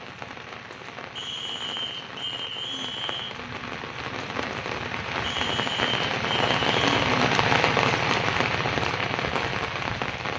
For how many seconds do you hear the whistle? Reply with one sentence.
You can hear the whistle for 4 seconds altogether.